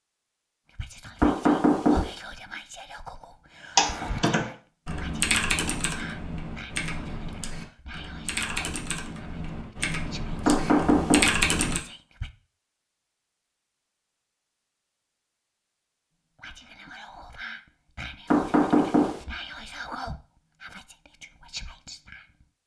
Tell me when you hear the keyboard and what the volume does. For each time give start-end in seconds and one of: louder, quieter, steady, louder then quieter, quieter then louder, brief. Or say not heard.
3.8-11.8 quieter then louder.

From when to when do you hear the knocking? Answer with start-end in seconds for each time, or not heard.
1.2-2.1, 10.4-11.4, 18.3-19.2.